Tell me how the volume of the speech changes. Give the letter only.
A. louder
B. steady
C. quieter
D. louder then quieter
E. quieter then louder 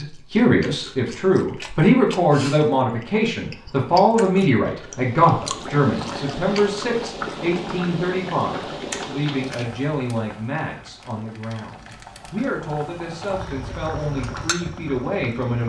C.